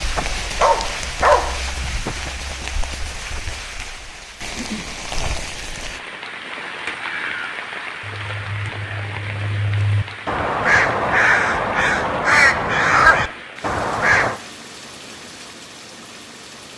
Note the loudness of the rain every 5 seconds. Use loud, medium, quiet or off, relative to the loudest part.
loud, loud, medium, medium.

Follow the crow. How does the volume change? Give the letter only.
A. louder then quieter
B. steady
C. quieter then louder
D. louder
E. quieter
D.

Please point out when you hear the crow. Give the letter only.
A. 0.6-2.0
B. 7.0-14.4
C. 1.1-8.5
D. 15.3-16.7
B.